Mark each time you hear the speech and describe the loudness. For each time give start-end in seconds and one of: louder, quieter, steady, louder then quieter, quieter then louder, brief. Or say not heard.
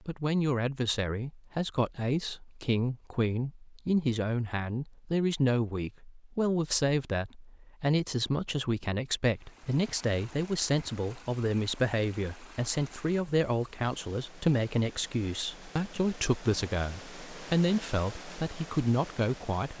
0.1-19.7 steady.